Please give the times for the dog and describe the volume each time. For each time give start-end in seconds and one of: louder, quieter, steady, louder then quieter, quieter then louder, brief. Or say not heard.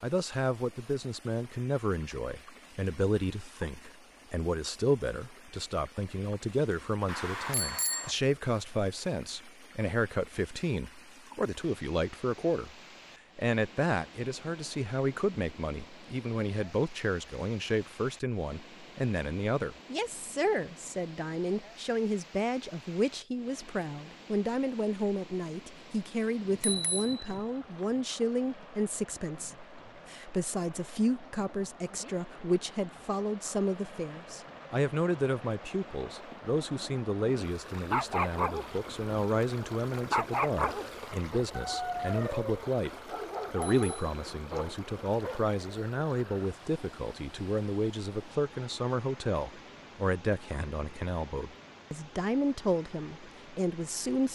37.7-39.1 brief
39.9-45.5 quieter.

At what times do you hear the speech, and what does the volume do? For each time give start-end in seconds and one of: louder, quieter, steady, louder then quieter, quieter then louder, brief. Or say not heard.
0.0-12.7 steady
13.3-54.2 steady.